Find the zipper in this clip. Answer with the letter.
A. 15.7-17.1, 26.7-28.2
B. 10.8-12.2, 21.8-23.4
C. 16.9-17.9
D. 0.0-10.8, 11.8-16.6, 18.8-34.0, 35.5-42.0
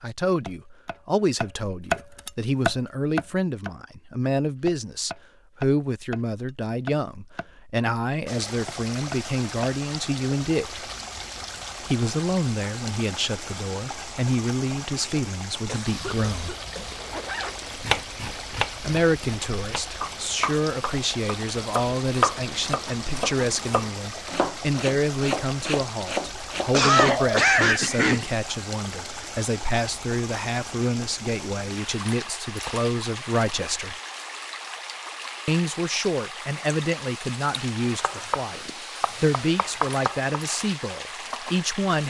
C.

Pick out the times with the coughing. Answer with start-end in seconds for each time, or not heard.
15.7-17.1, 26.7-28.2.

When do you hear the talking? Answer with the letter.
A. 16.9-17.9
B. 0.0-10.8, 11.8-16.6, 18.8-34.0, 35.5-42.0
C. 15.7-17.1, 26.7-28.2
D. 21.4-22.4
B.